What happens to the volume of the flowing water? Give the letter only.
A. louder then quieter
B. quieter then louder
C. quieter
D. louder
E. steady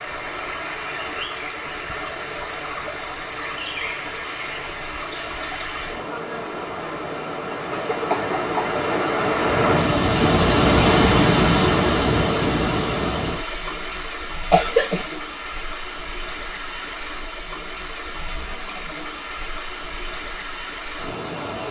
A.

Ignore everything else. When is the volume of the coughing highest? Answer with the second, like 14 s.
15 s.